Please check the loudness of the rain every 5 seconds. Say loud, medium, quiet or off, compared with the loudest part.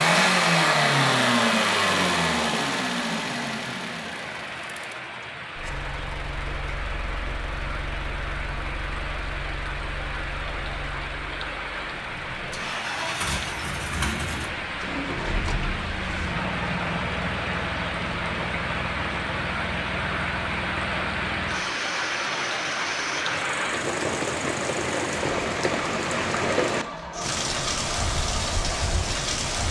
medium, medium, medium, loud, loud, loud.